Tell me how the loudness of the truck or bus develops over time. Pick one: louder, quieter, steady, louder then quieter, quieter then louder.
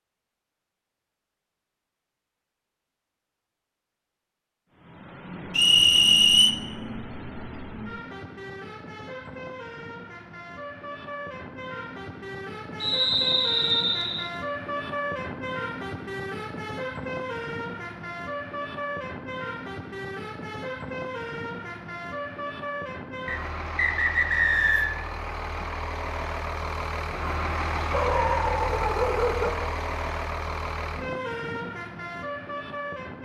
louder.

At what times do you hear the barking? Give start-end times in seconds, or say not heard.
27.9-29.7.